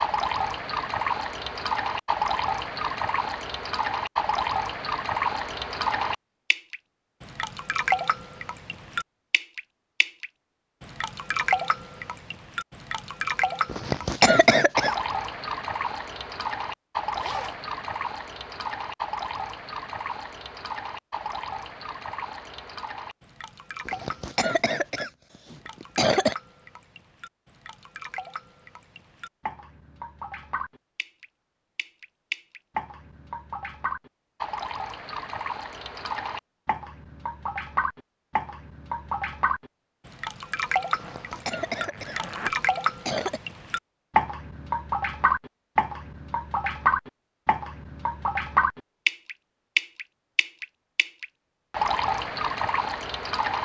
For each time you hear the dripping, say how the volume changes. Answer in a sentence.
The dripping can be heard from 0.0 to 53.5 s, getting quieter then louder.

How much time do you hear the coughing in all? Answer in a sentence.
You can hear the coughing for 6 seconds altogether.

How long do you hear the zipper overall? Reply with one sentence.
The zipper can be heard for 2 seconds in total.